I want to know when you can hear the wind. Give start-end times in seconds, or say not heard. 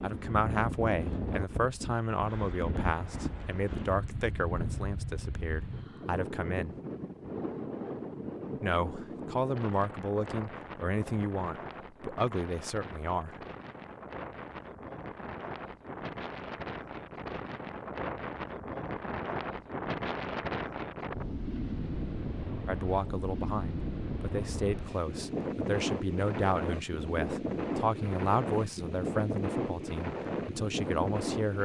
0.0-31.6.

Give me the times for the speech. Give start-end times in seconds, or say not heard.
0.0-6.8, 8.6-13.3, 22.6-31.6.